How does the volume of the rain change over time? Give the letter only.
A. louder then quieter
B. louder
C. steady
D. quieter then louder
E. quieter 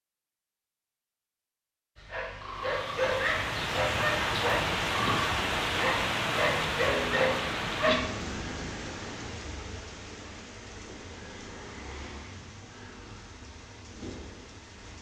E.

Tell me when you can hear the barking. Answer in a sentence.
You can hear the barking from 1.9 to 8.0 s.